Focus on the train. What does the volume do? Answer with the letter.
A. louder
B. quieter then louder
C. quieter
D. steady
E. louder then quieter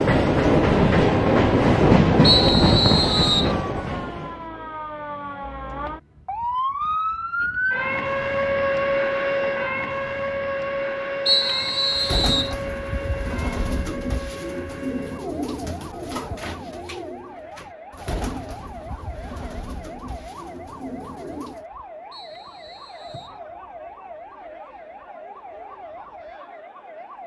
C.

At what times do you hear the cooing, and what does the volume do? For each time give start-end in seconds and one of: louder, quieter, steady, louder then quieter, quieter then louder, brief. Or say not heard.
11.9-21.6 quieter.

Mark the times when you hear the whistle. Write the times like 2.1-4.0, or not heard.
2.2-3.5, 11.2-12.6, 22.1-23.4.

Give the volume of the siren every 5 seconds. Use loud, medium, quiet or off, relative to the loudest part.
medium, loud, medium, quiet, quiet, quiet.